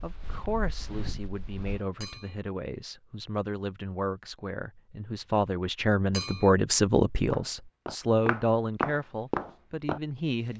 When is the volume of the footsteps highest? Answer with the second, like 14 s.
9 s.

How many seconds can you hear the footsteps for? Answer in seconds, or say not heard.
5 s.